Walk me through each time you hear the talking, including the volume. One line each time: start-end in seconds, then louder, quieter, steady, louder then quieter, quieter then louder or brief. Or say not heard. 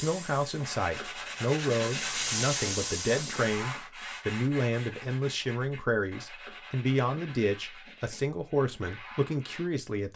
0.0-10.1 steady.